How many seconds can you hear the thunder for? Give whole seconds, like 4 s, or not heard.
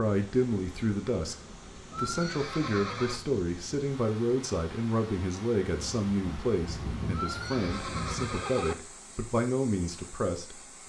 3 s.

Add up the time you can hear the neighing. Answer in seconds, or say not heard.
3 s.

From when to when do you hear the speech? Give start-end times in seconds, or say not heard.
0.0-1.4, 1.9-10.8.